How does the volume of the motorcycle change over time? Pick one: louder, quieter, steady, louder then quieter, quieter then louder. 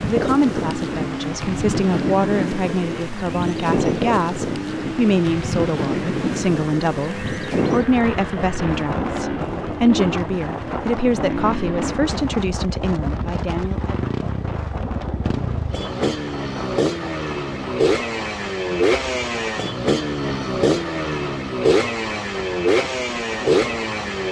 louder.